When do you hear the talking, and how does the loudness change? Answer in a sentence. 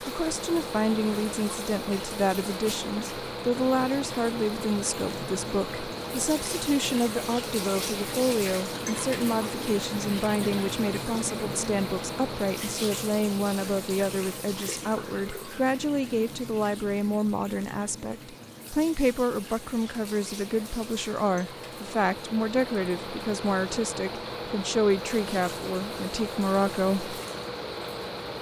You can hear the talking from 0.1 to 27.1 s, at a steady volume.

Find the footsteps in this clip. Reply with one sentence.
The footsteps can't be heard in this clip.